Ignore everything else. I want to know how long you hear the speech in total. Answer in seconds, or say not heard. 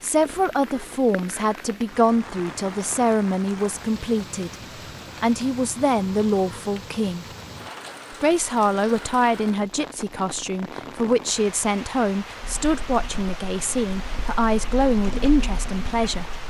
15 s.